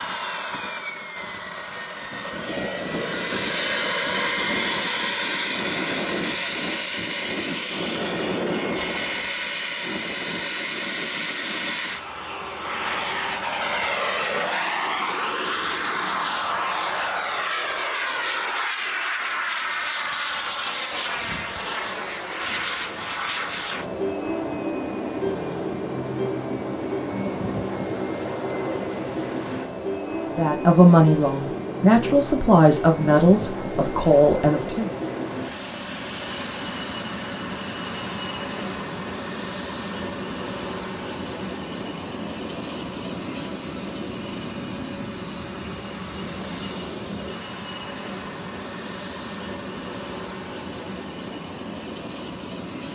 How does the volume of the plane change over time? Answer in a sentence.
The volume of the plane goes down.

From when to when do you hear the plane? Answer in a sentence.
The plane can be heard from 0.0 to 52.9 s.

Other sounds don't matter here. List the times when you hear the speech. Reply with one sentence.
You can hear the speech from 30.4 to 34.9 s.